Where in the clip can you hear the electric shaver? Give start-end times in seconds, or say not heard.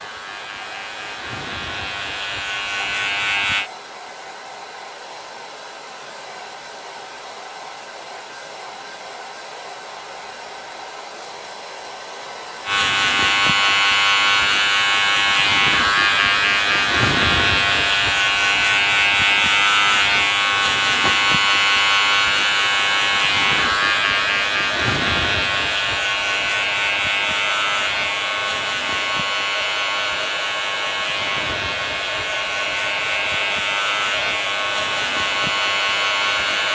0.0-3.7, 12.7-36.6.